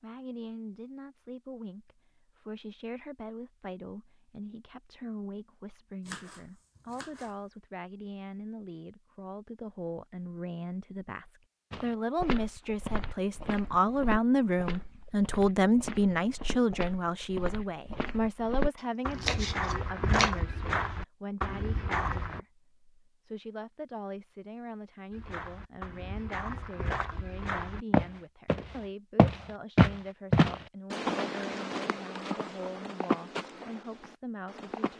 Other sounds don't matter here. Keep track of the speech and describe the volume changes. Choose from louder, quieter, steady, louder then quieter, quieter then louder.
louder then quieter.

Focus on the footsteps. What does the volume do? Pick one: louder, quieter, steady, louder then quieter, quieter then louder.
louder then quieter.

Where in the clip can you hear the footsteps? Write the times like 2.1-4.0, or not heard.
11.7-22.4, 25.1-34.9.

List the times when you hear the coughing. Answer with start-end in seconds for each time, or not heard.
not heard.